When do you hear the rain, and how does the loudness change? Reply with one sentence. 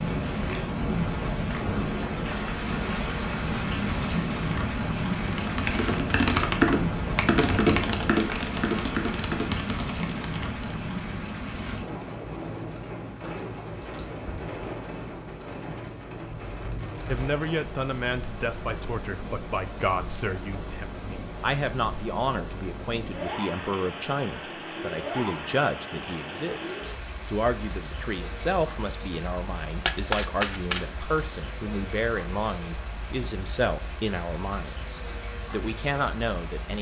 The rain can be heard from 0.0 to 36.7 s, getting quieter.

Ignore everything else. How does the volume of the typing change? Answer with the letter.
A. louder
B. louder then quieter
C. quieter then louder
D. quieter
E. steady
D.